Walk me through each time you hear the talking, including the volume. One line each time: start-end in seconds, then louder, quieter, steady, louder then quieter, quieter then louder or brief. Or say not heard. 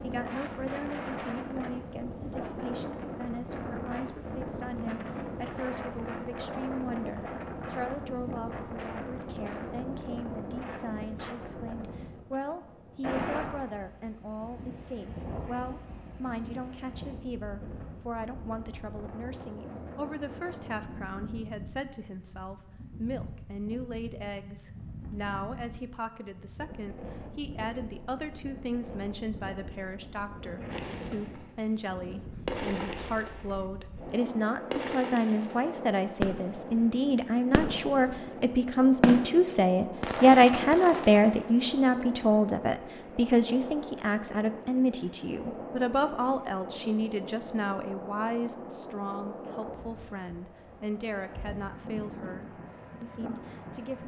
0.0-54.0 louder then quieter.